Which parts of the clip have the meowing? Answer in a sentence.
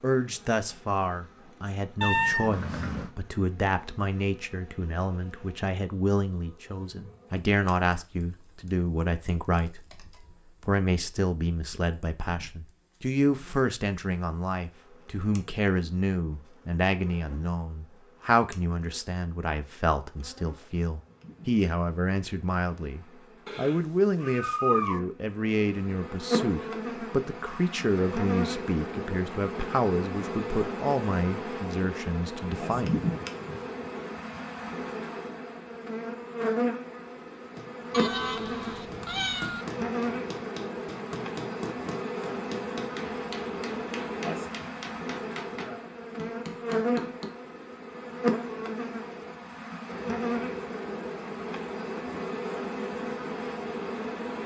You can hear the meowing from 2.0 to 3.1 s, from 23.4 to 25.0 s and from 37.9 to 39.6 s.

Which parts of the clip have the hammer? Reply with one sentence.
You can hear the hammer from 37.5 to 47.3 s.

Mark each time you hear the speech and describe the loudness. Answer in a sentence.
The speech can be heard from 0.0 to 32.9 s, at a steady volume.